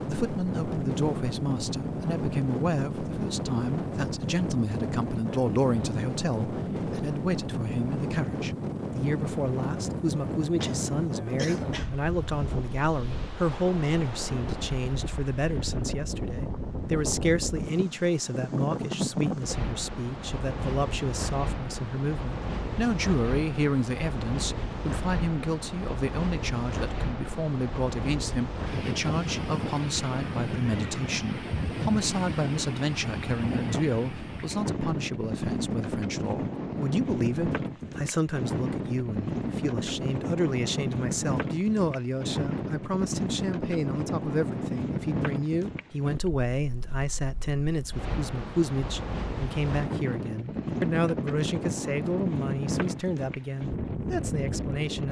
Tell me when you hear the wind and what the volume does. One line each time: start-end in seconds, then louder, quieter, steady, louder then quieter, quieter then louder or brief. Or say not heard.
0.0-55.0 steady.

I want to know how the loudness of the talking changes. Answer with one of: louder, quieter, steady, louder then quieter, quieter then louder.
steady.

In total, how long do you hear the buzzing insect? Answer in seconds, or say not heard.
not heard.